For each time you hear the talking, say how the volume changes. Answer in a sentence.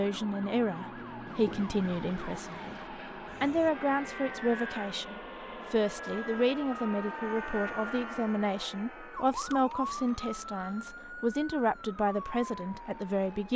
You can hear the talking from 0.0 to 13.5 s, at a steady volume.